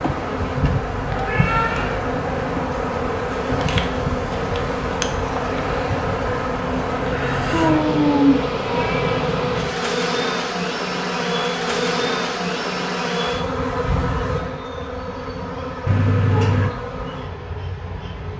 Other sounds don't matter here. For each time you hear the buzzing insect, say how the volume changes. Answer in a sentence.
You can hear the buzzing insect from 0.0 to 18.3 s, getting quieter.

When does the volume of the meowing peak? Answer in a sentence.
The loudest moment of the meowing is at 8 seconds.